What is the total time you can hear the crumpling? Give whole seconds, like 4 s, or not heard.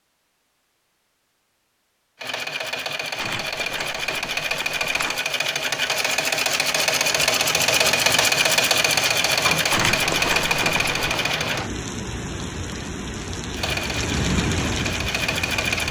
3 s.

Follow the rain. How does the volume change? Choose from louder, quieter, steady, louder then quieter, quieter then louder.
louder.